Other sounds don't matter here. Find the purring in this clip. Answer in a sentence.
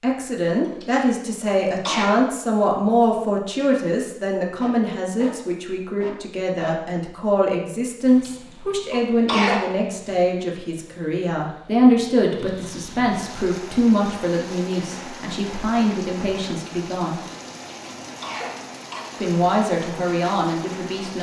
You can't hear the purring here.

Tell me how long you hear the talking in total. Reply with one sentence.
The talking can be heard for 19 seconds in total.